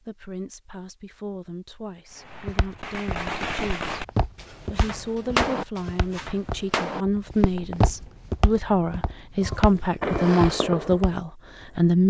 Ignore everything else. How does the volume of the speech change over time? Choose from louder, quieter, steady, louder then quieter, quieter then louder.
louder.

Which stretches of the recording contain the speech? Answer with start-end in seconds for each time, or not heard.
0.0-12.0.